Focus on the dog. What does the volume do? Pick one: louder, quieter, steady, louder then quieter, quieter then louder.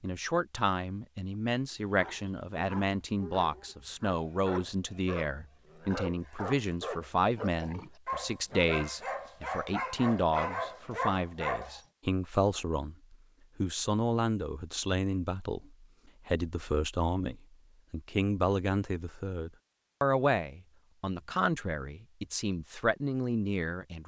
louder.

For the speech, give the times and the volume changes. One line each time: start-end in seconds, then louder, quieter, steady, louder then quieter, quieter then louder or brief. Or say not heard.
0.0-24.0 steady.